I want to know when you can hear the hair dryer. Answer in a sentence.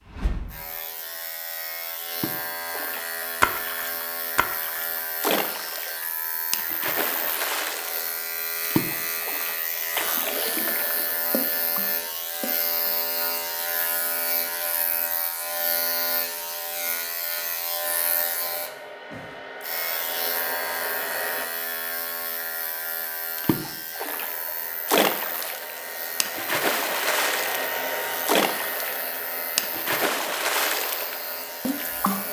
You can hear the hair dryer from 17.9 to 21.4 s and from 24.1 to 32.2 s.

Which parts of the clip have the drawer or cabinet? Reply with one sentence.
You can't hear the drawer or cabinet here.